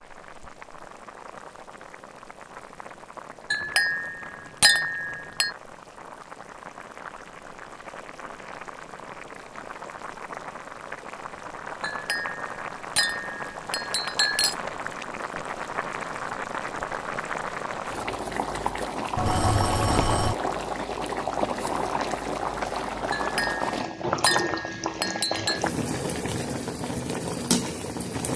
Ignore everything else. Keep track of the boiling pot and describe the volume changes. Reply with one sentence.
The loudness of the boiling pot goes up.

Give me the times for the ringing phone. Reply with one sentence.
You can hear the ringing phone from 19.1 to 20.4 s.